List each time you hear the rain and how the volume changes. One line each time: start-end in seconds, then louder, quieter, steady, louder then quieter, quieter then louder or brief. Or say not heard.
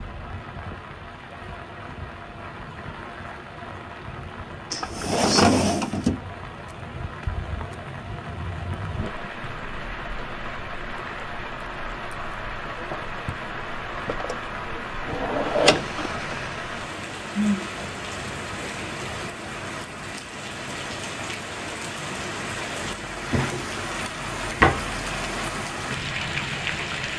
0.0-27.1 louder.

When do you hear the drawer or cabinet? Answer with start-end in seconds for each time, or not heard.
4.7-6.2, 14.1-16.1, 23.2-24.9.